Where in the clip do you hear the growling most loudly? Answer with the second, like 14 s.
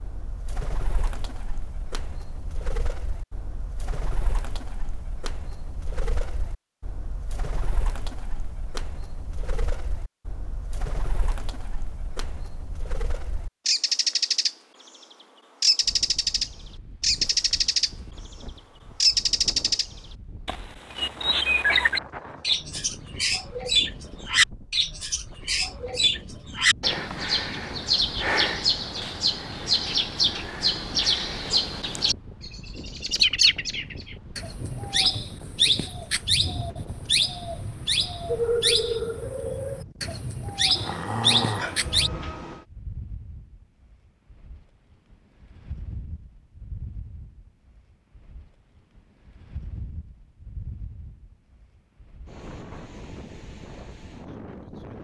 41 s.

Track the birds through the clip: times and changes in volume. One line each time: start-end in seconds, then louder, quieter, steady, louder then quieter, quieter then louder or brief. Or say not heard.
0.0-14.6 louder
15.6-17.9 brief
19.0-42.1 steady.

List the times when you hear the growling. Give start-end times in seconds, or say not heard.
40.8-42.6.